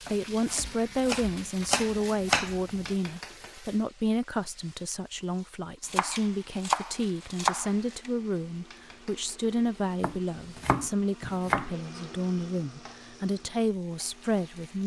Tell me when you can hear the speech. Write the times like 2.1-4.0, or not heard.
0.1-14.8.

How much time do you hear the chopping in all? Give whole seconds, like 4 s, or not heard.
7 s.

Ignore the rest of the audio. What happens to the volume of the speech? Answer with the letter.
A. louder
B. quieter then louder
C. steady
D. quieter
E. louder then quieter
C.